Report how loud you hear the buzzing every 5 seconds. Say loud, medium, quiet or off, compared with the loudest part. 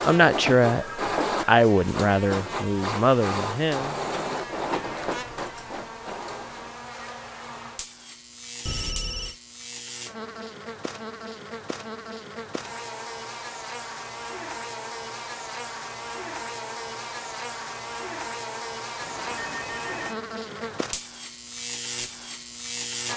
medium, medium, loud, loud, loud.